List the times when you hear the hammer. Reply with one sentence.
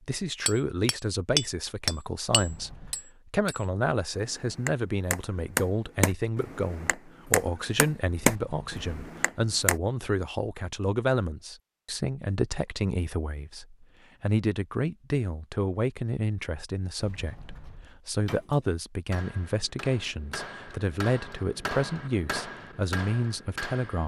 You can hear the hammer from 0.5 to 9.8 s and from 18.2 to 24.0 s.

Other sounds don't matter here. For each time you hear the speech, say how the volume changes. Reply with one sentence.
The speech can be heard from 0.1 to 24.0 s, at a steady volume.